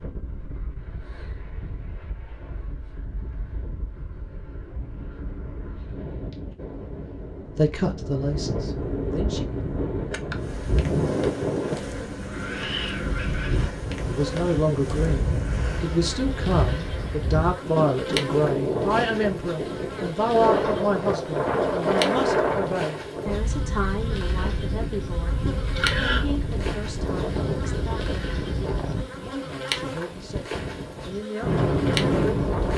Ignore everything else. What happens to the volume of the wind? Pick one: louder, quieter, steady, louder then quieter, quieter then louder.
louder.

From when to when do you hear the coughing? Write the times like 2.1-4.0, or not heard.
25.4-26.2.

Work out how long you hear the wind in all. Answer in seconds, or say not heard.
33 s.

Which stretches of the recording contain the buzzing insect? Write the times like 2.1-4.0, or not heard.
10.3-32.7.